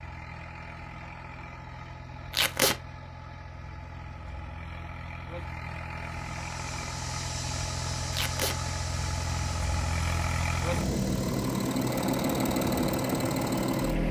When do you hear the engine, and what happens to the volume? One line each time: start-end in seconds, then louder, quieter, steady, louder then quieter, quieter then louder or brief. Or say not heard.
0.0-14.0 louder.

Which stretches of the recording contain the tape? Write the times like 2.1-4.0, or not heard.
2.3-2.8, 8.1-8.6.